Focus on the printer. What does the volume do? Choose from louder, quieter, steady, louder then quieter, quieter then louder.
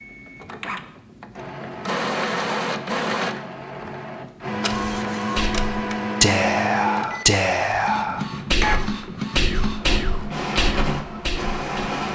steady.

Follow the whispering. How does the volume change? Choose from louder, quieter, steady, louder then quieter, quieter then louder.
quieter.